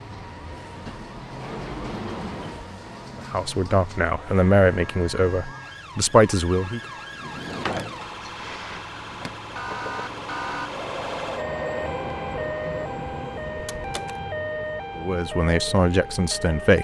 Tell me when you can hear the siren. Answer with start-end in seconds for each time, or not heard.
0.0-16.7.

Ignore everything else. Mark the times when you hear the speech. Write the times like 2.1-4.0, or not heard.
3.1-6.8, 14.9-16.7.